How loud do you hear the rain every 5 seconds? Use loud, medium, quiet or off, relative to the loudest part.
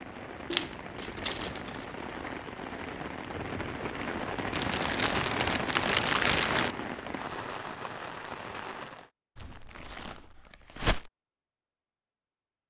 loud, loud, off.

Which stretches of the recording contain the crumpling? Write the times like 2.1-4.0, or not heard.
0.5-1.9, 4.5-6.8, 9.3-11.1.